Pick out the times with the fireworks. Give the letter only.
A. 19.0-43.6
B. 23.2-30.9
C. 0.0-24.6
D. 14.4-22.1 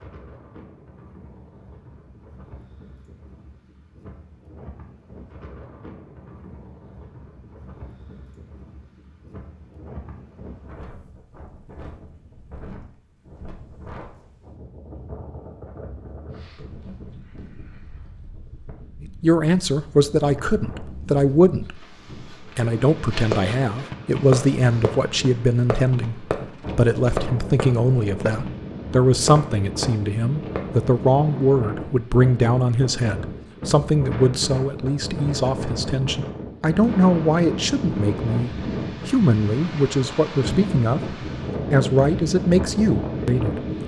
B.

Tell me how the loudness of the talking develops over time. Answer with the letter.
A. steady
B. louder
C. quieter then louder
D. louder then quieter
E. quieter
A.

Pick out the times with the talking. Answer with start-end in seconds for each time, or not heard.
19.0-43.6.